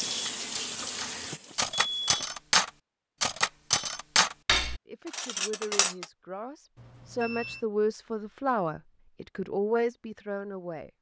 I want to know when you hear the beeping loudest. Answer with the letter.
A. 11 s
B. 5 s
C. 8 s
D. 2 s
D.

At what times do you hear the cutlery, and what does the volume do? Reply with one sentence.
You can hear the cutlery from 0.1 to 6.0 s, getting louder then quieter.